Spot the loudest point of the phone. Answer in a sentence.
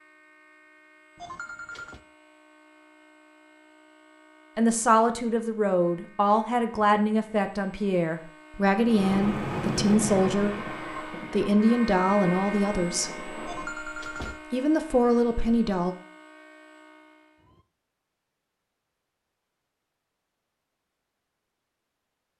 The loudest moment of the phone is at 14 seconds.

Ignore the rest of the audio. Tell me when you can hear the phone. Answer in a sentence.
You can hear the phone from 1.1 to 2.0 s and from 13.4 to 14.4 s.